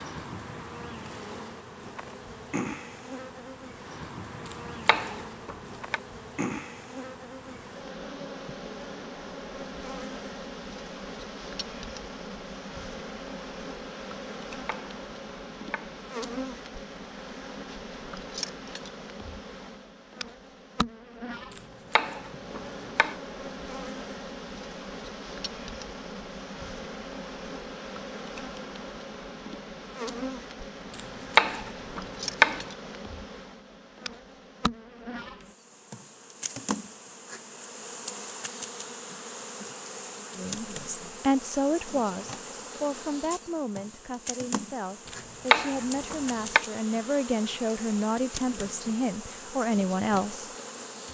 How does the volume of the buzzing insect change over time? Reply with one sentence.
The loudness of the buzzing insect stays about the same.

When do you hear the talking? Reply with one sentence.
You can hear the talking from 40.4 to 50.5 s.